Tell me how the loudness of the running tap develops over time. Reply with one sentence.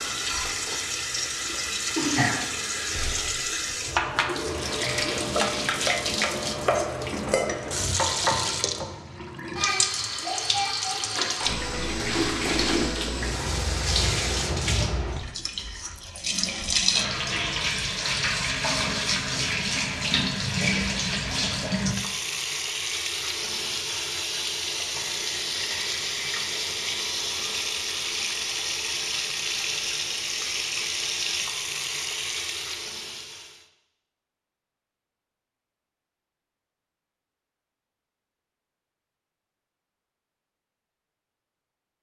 The volume of the running tap stays about the same.